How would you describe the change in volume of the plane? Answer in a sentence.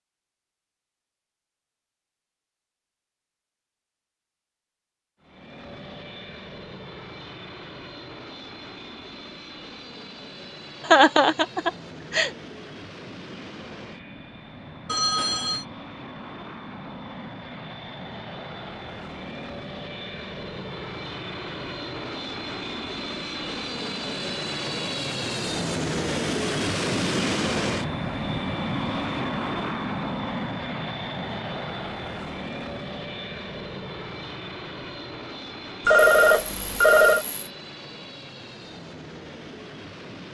The loudness of the plane goes up, then down.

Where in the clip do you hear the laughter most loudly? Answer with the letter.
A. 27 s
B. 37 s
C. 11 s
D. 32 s
C.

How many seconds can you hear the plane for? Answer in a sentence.
You can hear the plane for 35 seconds altogether.